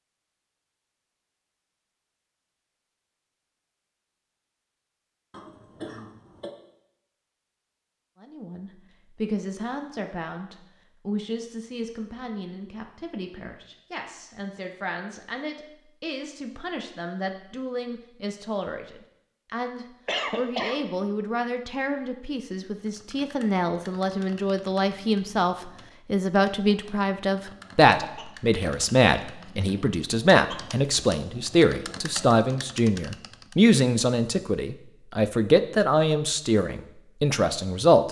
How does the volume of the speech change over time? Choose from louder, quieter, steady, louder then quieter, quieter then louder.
louder.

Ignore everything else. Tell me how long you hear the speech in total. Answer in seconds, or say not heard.
30 s.